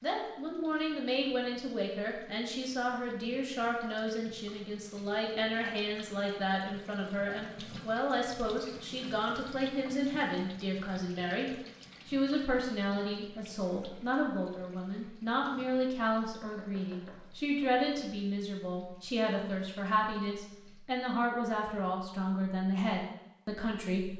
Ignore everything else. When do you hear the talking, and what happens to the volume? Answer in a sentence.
You can hear the talking from 0.0 to 24.1 s, at a steady volume.